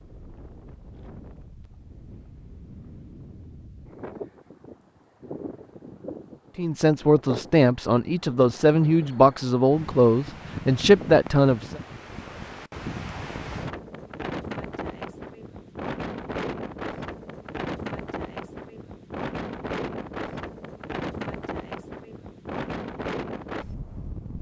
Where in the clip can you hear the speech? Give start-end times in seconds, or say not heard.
6.5-11.8.